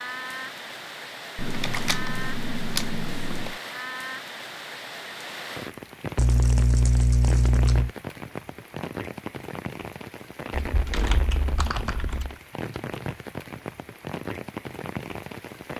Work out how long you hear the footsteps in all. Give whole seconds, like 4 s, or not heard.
not heard.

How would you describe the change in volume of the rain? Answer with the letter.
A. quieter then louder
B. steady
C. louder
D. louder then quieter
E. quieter
B.